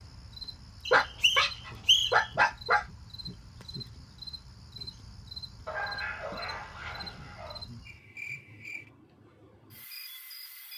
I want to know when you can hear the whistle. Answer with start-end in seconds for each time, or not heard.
0.8-2.3.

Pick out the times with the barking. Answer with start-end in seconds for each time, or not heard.
0.9-2.9, 5.7-7.7.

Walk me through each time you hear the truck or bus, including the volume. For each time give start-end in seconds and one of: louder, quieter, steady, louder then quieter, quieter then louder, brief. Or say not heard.
not heard.